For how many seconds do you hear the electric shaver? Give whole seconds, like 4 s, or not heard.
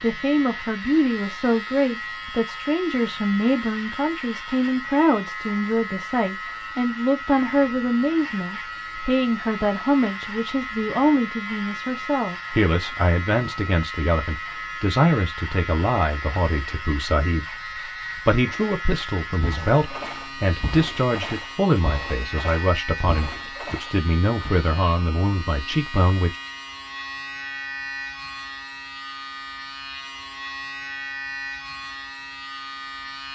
33 s.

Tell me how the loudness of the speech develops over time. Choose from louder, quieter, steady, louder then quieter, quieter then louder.
steady.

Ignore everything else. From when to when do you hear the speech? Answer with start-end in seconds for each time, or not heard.
0.0-17.6, 18.2-26.4.